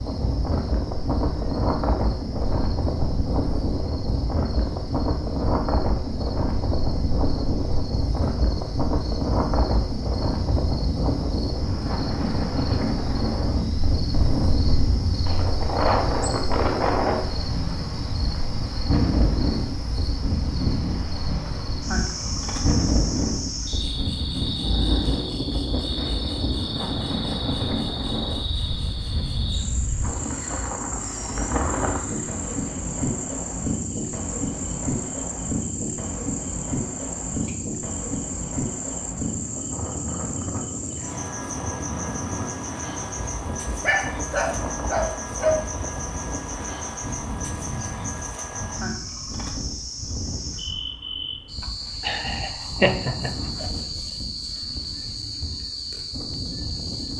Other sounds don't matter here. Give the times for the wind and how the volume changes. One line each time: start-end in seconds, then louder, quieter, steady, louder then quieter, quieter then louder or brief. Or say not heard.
0.0-57.1 quieter.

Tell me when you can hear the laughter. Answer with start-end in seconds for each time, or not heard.
51.6-53.7.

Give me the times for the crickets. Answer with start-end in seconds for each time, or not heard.
0.0-57.1.